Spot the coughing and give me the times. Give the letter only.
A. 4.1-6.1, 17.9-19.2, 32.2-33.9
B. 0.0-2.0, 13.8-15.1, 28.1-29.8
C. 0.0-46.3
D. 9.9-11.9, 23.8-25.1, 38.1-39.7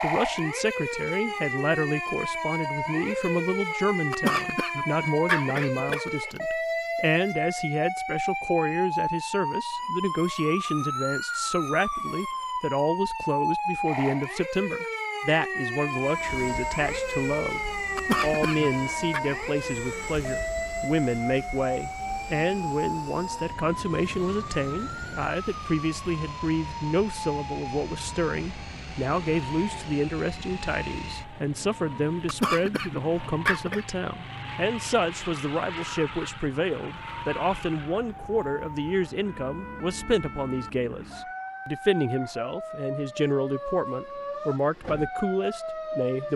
A.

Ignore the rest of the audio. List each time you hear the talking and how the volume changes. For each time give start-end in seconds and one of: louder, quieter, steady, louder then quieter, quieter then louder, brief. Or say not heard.
0.0-46.3 steady.